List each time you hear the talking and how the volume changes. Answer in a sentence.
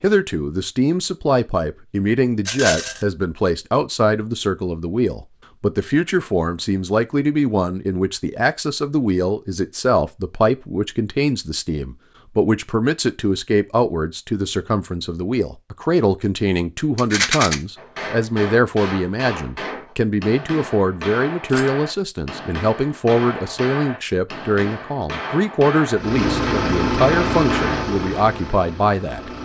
The talking can be heard from 0.0 to 29.3 s, at a steady volume.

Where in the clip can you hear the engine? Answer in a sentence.
The engine can be heard from 25.9 to 29.4 s.